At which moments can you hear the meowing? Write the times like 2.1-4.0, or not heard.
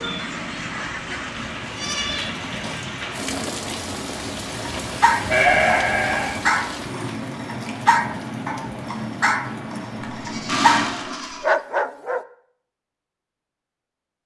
not heard.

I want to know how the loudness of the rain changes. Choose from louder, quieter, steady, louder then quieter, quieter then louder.
steady.